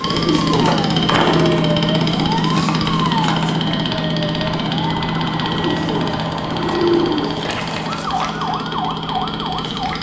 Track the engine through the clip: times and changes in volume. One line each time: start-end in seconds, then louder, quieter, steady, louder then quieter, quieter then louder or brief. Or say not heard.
0.0-9.9 quieter.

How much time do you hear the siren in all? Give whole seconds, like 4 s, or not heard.
10 s.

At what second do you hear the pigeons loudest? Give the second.
7 s.